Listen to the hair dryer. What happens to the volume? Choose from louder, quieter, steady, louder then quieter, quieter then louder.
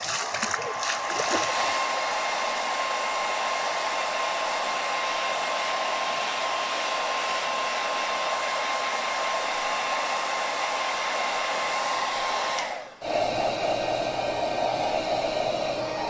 steady.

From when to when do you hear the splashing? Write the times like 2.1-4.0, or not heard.
0.0-2.1.